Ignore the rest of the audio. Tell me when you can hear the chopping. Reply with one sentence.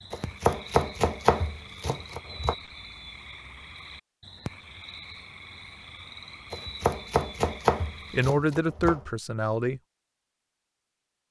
You can hear the chopping from 0.1 to 2.5 s and from 6.5 to 9.1 s.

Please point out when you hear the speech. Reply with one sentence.
You can hear the speech from 8.1 to 9.8 s.